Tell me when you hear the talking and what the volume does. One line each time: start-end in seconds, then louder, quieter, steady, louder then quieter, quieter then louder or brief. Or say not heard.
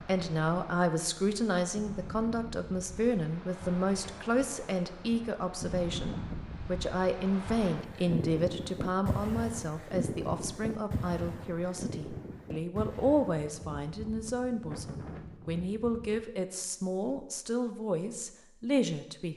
0.0-19.3 steady.